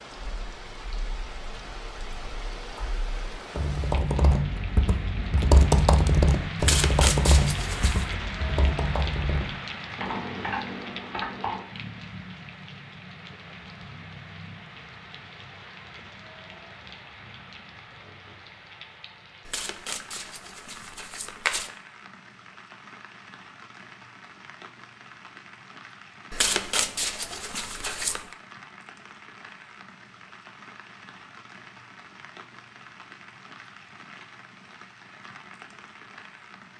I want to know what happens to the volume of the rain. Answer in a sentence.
The loudness of the rain goes down.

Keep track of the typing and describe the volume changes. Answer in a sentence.
The volume of the typing goes up, then down.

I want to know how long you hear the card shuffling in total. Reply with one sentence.
The card shuffling can be heard for 6 seconds in total.